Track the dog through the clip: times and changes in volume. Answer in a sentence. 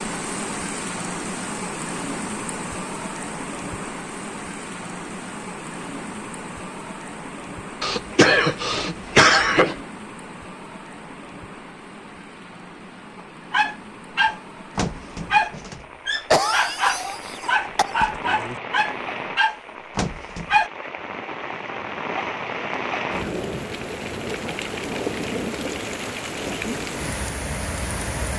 You can hear the dog from 13.5 to 20.7 s, at a steady volume.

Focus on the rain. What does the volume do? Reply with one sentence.
The loudness of the rain goes down, then up.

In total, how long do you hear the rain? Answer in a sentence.
You can hear the rain for 28 seconds altogether.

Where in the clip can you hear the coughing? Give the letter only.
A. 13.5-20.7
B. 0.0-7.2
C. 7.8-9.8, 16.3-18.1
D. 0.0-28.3
C.